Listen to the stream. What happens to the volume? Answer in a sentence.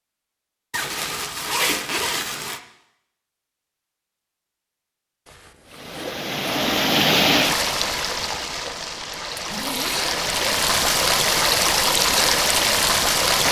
The loudness of the stream goes down, then up.